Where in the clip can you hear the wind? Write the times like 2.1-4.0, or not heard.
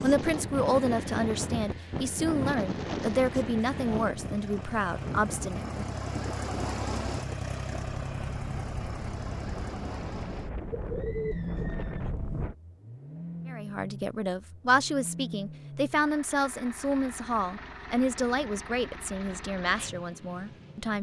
0.0-12.6.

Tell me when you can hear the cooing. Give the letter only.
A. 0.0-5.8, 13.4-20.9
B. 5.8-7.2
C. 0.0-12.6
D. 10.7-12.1
D.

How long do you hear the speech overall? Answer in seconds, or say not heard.
13 s.